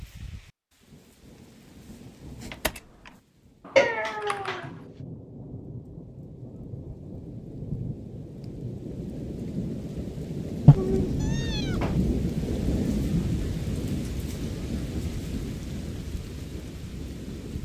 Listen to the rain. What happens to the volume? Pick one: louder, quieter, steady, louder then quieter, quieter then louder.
louder then quieter.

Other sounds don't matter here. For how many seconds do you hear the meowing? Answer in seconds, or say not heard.
2 s.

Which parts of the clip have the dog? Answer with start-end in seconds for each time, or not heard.
not heard.